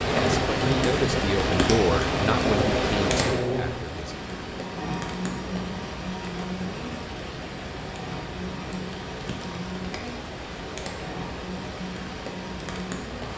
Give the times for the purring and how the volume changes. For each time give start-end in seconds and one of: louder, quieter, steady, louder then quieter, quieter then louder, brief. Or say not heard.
not heard.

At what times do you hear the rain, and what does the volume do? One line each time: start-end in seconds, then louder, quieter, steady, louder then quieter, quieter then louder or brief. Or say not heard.
0.0-13.3 quieter.